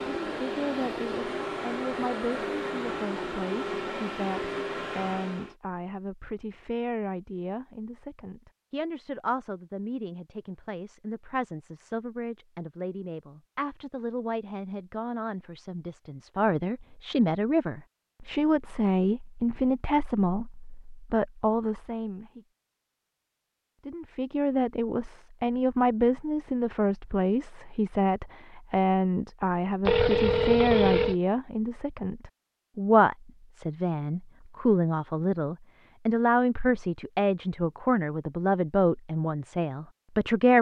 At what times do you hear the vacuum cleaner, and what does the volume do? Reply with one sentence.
You can hear the vacuum cleaner from 0.0 to 5.5 s, at a steady volume.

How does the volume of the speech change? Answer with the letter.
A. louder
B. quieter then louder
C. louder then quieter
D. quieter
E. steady
A.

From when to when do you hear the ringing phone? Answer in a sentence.
You can hear the ringing phone from 29.9 to 31.1 s.